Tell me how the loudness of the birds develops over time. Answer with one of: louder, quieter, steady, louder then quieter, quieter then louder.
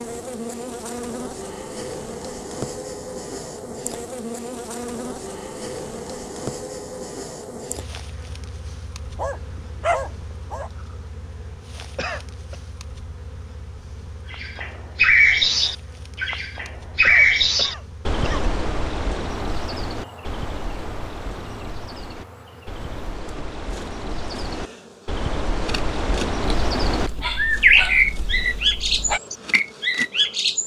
quieter then louder.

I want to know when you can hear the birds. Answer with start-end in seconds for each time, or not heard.
14.3-30.6.